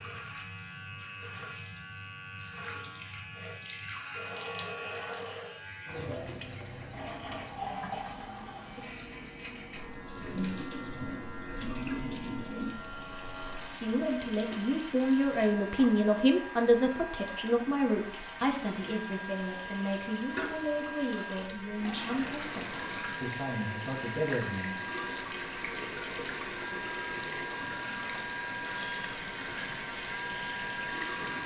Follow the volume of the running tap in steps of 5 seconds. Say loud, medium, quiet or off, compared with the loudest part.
medium, loud, loud, medium, loud, loud, loud.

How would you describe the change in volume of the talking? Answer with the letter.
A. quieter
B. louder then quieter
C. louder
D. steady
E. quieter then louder
A.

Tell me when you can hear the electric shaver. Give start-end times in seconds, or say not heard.
0.0-31.4.